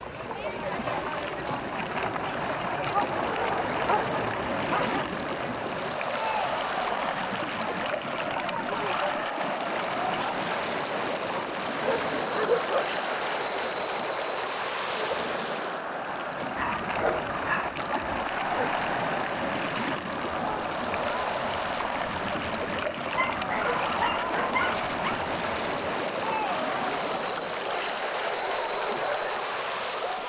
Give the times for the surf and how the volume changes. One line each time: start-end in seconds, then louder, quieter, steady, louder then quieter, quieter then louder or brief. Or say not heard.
0.0-30.2 steady.